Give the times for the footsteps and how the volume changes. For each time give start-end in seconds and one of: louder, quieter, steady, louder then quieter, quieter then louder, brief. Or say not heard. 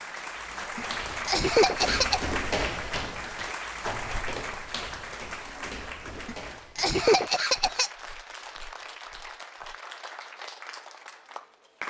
0.7-9.8 quieter.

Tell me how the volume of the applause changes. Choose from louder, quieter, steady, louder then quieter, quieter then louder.
quieter.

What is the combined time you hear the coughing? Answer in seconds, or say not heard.
3 s.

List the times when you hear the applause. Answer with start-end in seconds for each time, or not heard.
0.0-11.8.